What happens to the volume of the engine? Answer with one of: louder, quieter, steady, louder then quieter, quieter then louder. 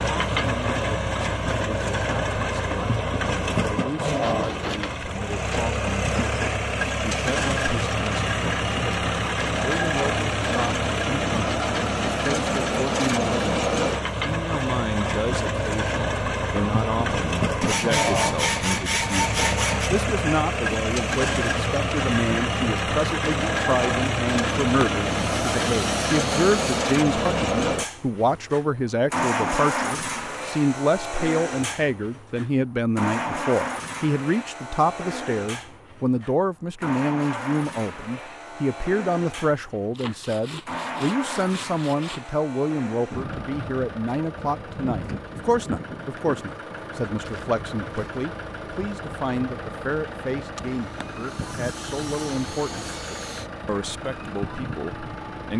quieter.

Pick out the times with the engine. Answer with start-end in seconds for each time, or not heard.
0.0-55.5.